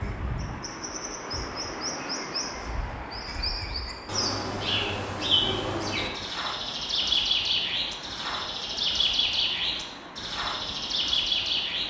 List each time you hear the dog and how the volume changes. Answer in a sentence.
You can't hear the dog here.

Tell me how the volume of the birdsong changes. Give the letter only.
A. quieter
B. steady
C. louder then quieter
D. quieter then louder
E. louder
E.